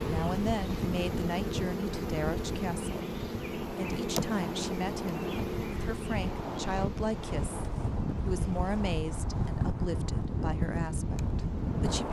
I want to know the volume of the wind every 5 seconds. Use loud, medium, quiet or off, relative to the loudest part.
medium, loud, loud.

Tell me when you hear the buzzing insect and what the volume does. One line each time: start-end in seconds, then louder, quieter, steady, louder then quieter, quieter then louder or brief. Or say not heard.
0.0-11.9 quieter.